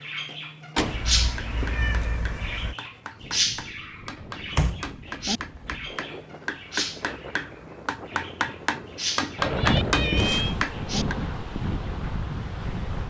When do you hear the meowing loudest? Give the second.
10 s.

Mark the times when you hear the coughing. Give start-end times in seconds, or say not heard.
not heard.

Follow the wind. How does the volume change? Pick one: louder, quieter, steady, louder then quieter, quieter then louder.
louder.